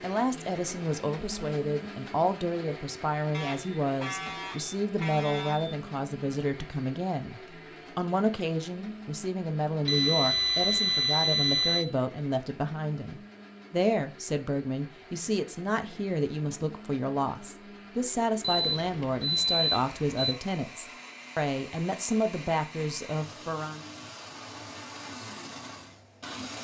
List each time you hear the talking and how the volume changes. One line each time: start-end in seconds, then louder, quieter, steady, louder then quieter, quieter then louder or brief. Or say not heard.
0.0-23.8 steady.